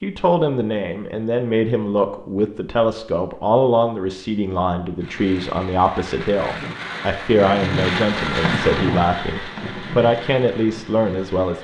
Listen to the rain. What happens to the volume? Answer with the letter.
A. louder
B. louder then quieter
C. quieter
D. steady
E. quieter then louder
B.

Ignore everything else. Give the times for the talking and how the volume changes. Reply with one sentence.
You can hear the talking from 0.0 to 11.6 s, at a steady volume.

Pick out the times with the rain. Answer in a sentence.
The rain can be heard from 5.0 to 11.6 s.